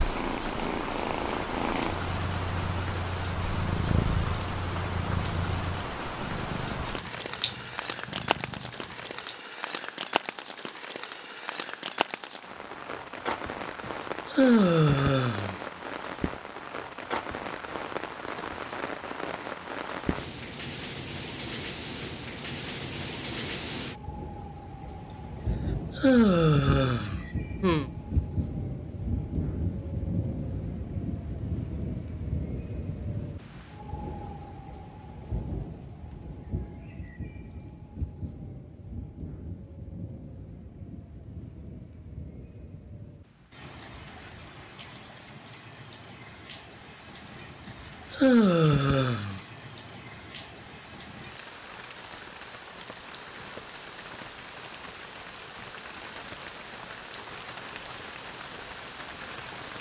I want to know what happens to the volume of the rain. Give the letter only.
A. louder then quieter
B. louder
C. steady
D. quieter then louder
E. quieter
E.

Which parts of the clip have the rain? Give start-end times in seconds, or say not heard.
0.0-59.7.